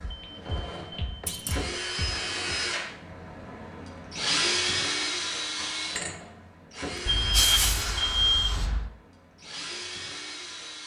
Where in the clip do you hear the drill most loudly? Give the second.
5 s.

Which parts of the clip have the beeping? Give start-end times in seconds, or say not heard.
0.0-2.5, 7.0-8.9.